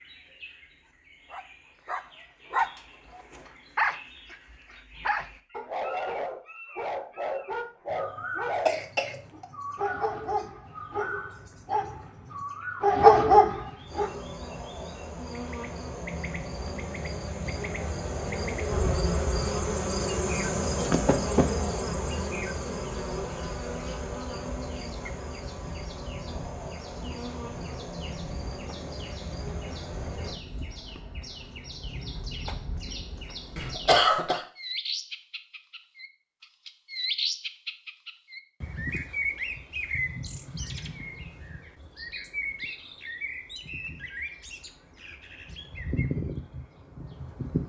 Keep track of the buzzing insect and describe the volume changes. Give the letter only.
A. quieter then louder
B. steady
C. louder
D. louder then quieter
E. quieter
D.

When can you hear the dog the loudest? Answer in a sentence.
The loudest moment of the dog is at 13 seconds.